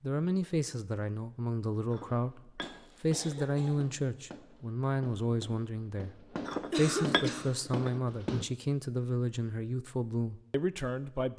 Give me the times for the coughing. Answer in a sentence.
The coughing can be heard from 2.6 to 3.9 s and from 6.5 to 7.5 s.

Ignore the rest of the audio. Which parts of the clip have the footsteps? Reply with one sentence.
The footsteps can't be heard in this clip.